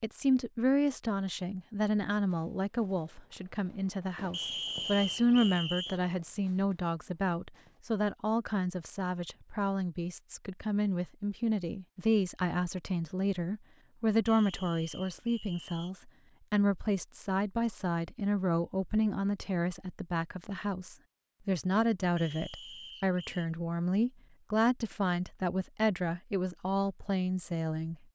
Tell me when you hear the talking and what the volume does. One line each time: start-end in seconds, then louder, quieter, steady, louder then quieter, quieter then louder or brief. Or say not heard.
0.0-27.9 steady.